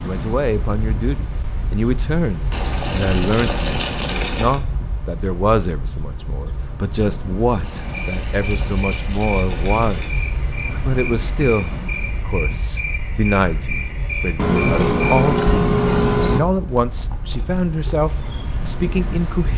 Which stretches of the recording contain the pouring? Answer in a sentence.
The pouring can be heard from 2.5 to 4.6 s, from 7.6 to 10.2 s and from 14.3 to 16.4 s.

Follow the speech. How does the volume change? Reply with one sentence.
The loudness of the speech stays about the same.